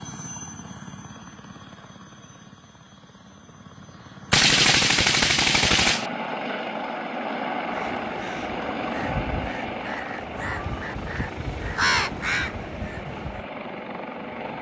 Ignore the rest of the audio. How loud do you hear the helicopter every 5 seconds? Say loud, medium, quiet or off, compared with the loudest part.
quiet, loud, medium.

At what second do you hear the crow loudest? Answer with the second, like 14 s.
12 s.